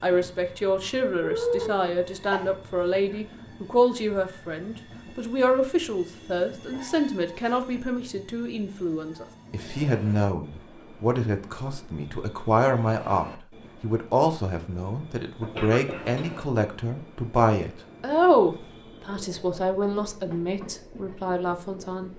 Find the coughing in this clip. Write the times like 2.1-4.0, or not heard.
1.2-2.5, 15.4-16.4.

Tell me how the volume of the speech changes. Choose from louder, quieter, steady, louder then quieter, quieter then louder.
steady.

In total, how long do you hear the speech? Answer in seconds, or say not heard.
22 s.